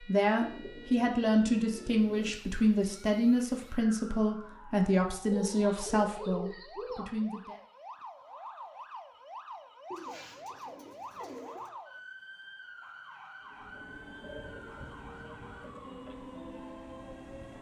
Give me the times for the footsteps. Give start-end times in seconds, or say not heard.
not heard.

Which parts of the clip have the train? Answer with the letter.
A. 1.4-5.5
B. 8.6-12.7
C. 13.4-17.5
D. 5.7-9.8
C.